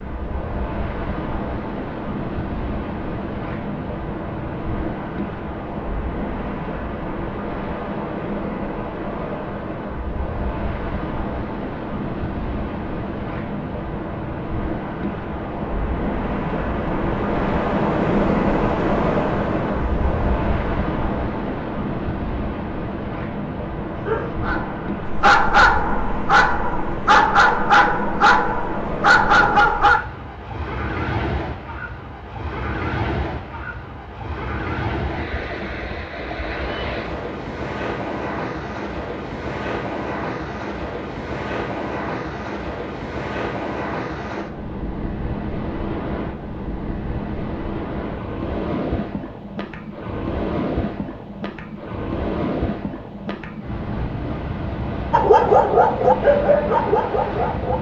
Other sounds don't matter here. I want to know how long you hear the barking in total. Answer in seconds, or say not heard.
9 s.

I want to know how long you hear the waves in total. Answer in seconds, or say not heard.
58 s.